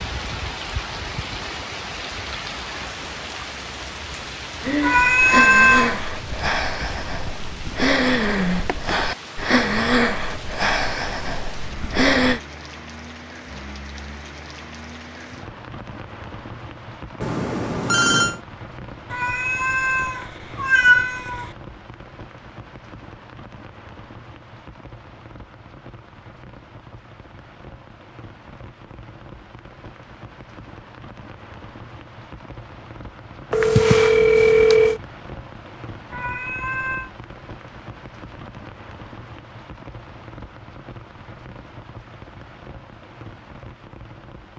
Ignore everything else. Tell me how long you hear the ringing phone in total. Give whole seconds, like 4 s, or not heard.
3 s.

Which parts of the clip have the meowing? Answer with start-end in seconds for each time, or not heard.
4.8-6.0, 19.1-21.5, 36.1-37.1.